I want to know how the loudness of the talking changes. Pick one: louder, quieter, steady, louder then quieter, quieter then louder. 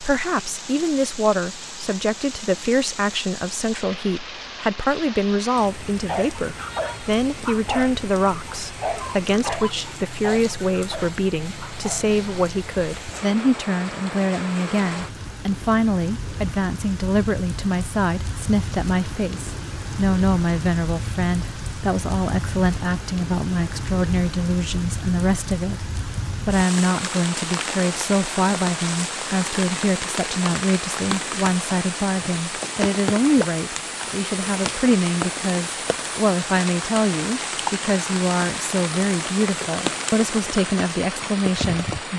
steady.